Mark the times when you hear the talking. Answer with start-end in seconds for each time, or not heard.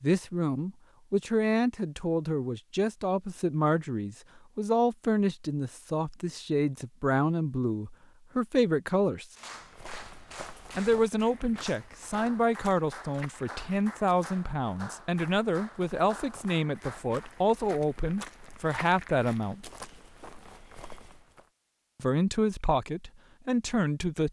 0.0-9.2, 10.8-19.6, 22.0-24.2.